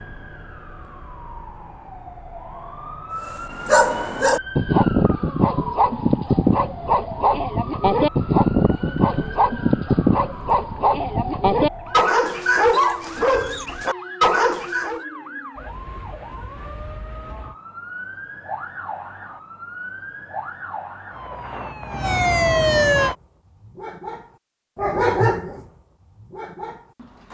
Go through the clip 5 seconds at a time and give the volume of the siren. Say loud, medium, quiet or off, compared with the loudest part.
quiet, quiet, quiet, quiet, loud, off.